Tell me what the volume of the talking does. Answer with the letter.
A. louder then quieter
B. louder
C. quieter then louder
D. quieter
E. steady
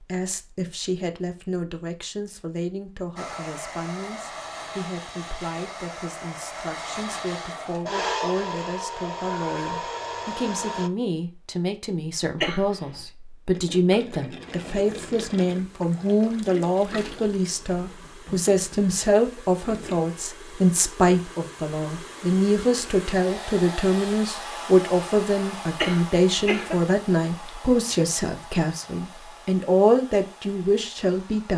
B.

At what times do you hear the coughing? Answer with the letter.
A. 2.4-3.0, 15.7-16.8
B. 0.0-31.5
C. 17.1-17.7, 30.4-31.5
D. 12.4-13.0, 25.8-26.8
D.